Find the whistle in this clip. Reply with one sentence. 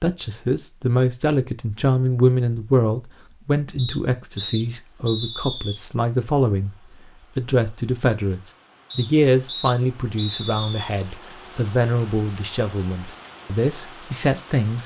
You can hear the whistle from 3.8 to 5.8 s and from 8.9 to 10.9 s.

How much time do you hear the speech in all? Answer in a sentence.
The speech can be heard for 14 seconds in total.